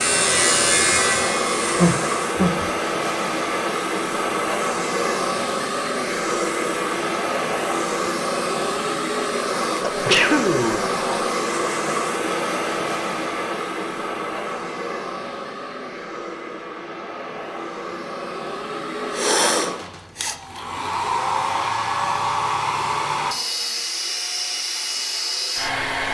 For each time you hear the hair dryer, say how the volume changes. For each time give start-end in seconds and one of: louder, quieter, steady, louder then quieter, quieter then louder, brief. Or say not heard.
0.0-26.1 quieter then louder.